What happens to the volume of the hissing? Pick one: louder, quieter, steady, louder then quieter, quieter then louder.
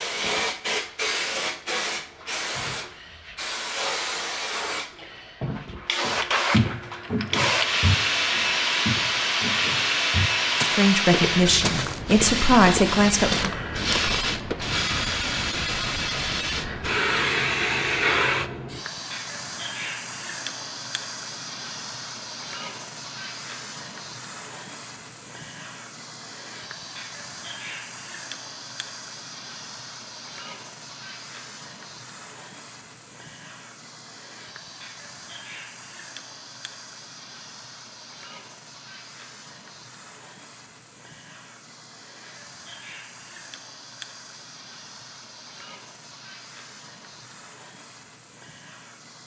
quieter.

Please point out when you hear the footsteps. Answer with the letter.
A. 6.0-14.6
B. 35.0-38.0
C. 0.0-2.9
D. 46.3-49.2
A.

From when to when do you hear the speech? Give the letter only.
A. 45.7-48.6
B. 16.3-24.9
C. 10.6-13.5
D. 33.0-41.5
C.